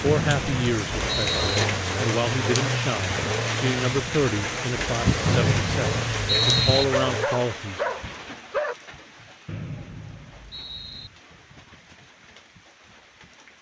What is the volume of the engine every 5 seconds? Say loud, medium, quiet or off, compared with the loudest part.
loud, loud, off.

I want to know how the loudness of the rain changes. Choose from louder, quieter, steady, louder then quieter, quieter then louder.
quieter.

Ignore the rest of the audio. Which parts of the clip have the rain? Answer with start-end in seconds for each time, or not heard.
0.0-13.5.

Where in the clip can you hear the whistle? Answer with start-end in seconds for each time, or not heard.
0.1-1.6, 5.2-6.8, 9.4-11.1.